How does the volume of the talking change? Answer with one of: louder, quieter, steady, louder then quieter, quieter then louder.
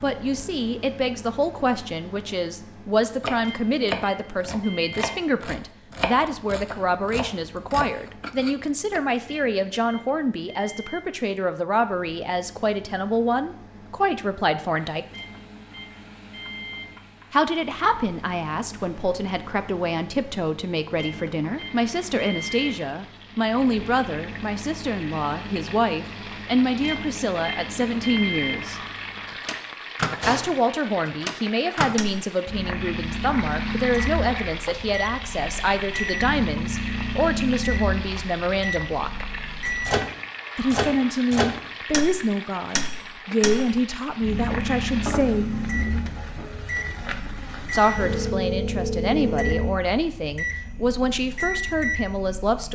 steady.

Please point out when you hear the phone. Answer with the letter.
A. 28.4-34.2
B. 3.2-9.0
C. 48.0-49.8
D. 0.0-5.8
C.